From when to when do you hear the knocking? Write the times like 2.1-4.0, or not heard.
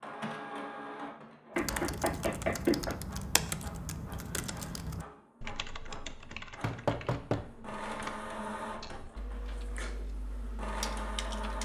1.6-3.0, 6.6-7.8.